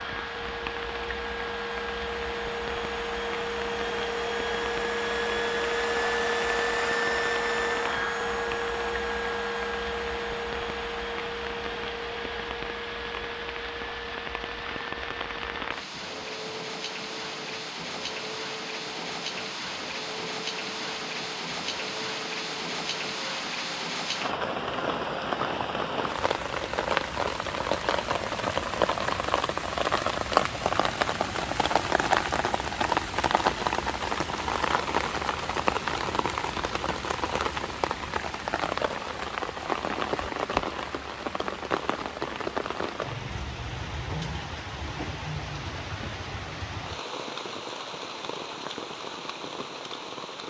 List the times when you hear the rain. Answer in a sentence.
The rain can be heard from 0.0 to 50.4 s.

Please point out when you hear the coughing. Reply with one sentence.
You can't hear the coughing here.